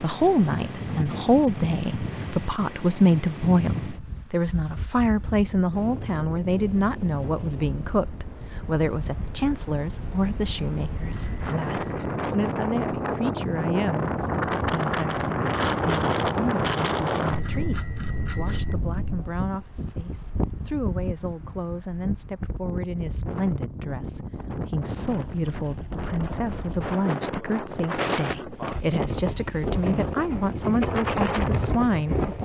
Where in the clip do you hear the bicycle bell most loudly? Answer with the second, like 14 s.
18 s.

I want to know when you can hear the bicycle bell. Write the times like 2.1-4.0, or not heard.
11.0-12.1, 17.3-18.8.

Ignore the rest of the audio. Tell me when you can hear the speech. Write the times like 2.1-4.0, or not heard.
0.0-32.2.